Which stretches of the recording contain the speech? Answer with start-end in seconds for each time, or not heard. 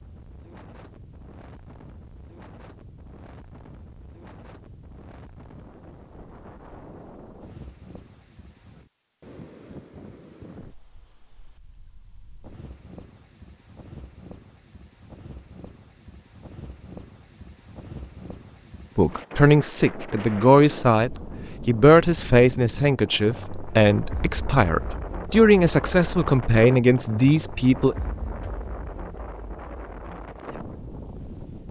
18.9-27.9.